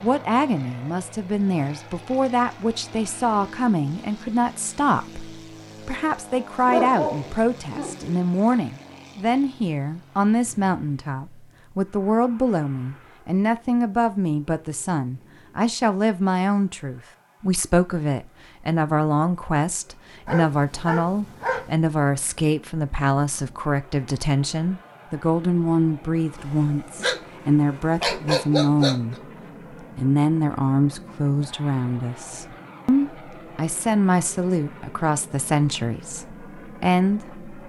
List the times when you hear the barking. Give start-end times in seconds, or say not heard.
6.7-8.3, 20.2-21.7, 26.4-29.1.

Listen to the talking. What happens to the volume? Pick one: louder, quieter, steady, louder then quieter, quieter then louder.
steady.